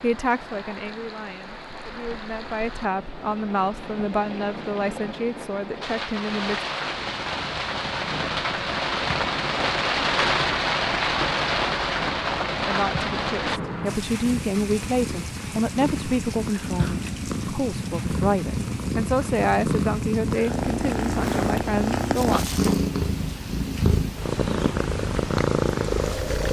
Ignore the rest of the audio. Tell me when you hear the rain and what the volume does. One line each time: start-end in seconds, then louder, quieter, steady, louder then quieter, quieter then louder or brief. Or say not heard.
0.0-26.4 louder then quieter.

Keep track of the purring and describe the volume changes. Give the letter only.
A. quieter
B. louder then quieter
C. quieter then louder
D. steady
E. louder
E.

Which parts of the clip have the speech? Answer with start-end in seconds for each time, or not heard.
0.0-6.7, 12.7-22.4.